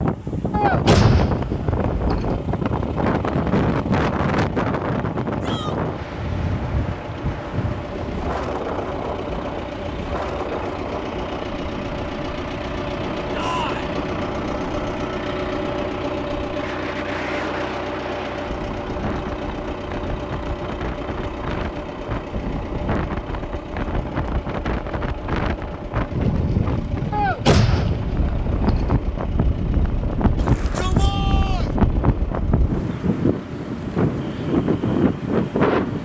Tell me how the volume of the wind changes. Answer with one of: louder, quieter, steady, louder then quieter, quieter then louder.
quieter then louder.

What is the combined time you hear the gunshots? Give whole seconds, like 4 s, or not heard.
4 s.